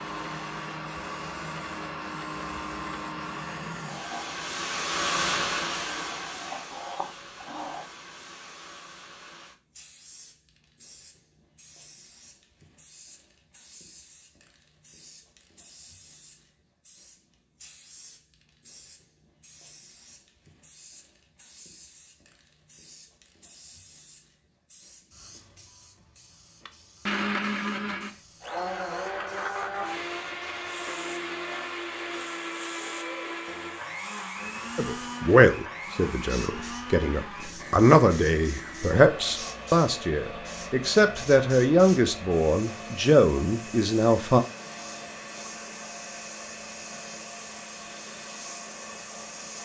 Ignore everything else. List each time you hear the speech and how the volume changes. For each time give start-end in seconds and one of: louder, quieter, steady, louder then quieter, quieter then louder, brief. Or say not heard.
34.8-44.4 steady.